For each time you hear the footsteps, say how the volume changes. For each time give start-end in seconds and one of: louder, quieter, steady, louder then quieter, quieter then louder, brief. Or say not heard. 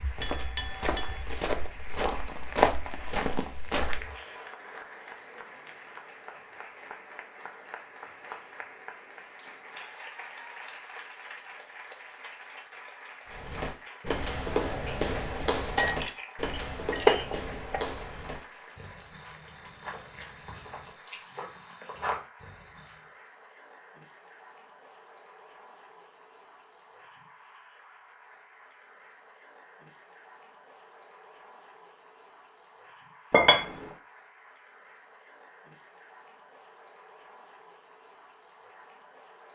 0.0-4.2 louder then quieter
13.2-23.0 quieter then louder.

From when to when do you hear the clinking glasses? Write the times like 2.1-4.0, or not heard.
0.2-1.2, 15.8-17.9, 33.3-33.9.